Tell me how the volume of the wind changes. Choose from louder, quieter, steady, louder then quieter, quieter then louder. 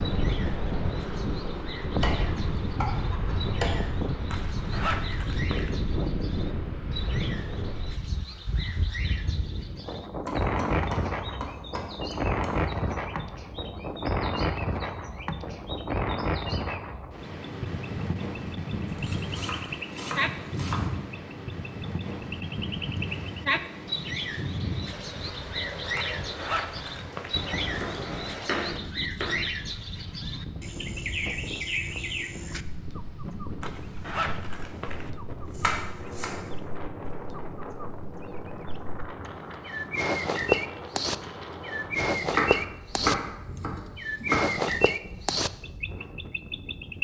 quieter.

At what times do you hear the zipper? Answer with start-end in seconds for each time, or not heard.
4.3-5.8, 25.9-27.4, 33.6-35.1.